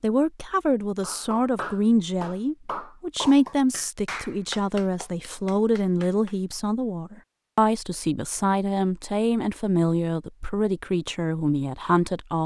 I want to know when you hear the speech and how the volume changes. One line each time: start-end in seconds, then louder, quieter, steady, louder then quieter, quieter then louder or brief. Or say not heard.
0.0-12.4 steady.